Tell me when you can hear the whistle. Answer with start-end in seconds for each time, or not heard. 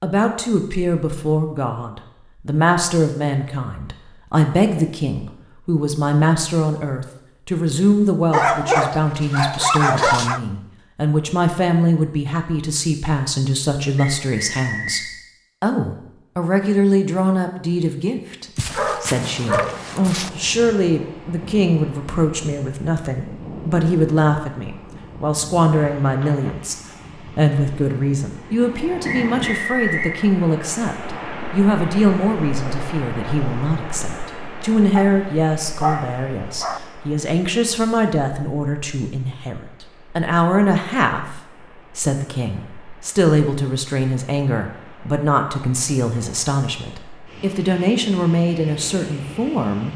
13.9-15.1, 29.1-30.1.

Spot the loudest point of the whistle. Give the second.
30 s.